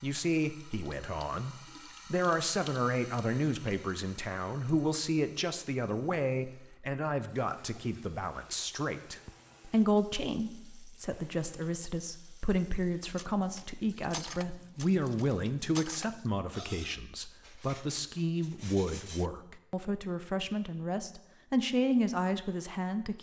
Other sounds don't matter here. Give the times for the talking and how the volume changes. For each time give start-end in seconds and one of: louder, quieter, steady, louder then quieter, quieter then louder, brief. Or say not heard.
0.0-23.1 steady.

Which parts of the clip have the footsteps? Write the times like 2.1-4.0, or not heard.
not heard.